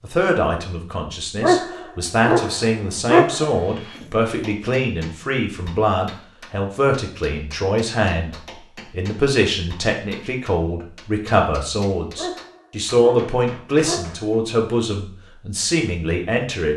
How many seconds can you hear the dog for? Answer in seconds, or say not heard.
5 s.